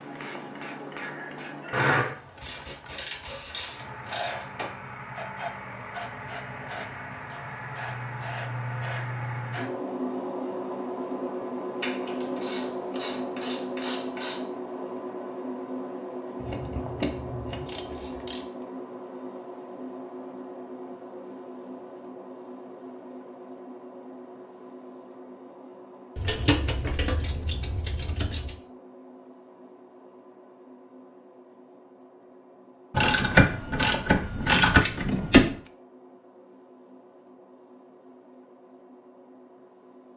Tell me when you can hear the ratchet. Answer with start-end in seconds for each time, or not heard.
1.7-4.7, 11.8-14.4, 16.4-18.4, 26.1-28.6, 32.9-35.5.